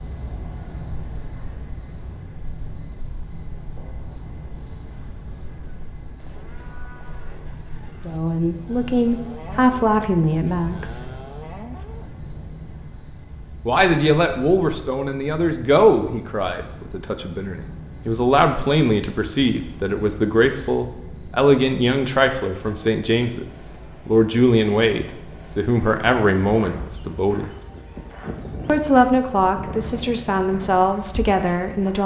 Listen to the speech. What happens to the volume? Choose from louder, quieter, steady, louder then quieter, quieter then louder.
steady.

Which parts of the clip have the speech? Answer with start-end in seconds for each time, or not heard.
8.1-11.1, 13.7-27.4, 28.6-32.0.